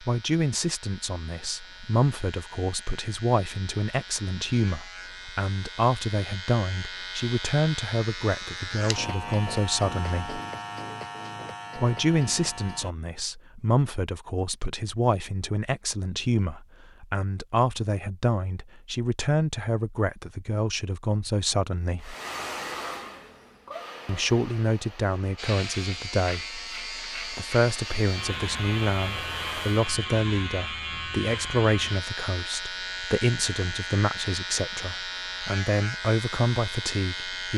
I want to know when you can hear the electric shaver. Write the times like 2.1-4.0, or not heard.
0.0-12.9, 25.4-37.5.